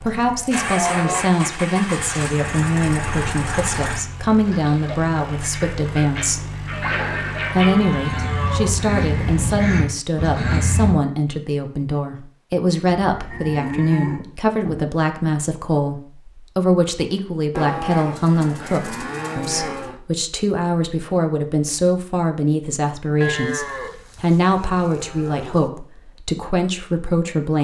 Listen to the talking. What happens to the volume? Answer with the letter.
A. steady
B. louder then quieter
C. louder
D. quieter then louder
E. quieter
A.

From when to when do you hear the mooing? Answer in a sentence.
The mooing can be heard from 0.1 to 1.2 s, from 6.7 to 8.7 s, from 13.0 to 14.9 s, from 17.5 to 20.0 s and from 23.2 to 25.7 s.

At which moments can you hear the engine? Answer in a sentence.
The engine can be heard from 0.0 to 9.6 s.